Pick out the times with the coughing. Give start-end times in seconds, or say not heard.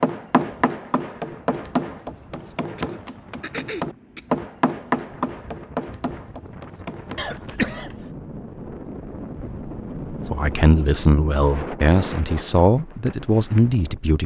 2.8-4.2, 7.2-8.1.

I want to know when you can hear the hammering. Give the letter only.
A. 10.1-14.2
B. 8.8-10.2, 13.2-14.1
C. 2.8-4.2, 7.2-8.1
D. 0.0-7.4
D.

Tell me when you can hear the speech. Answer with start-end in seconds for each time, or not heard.
10.1-14.2.